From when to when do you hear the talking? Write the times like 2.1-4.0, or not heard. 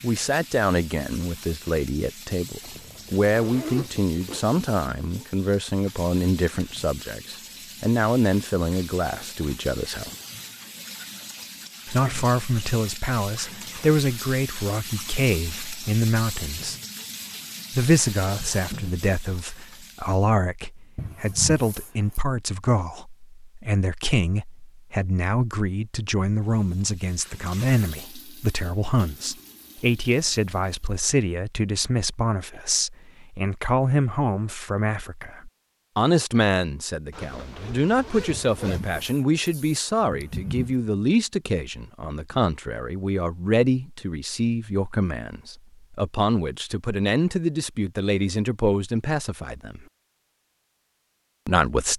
0.0-10.1, 11.8-16.8, 17.7-49.8, 51.5-51.9.